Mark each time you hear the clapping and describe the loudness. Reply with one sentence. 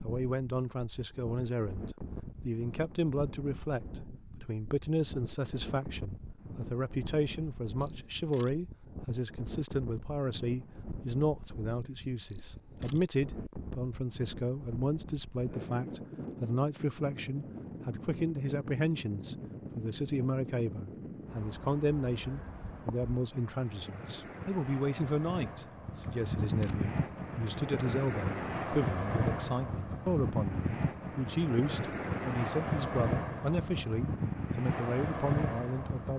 The clapping can't be heard in this clip.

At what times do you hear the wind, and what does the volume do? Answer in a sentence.
You can hear the wind from 0.0 to 36.1 s, getting louder.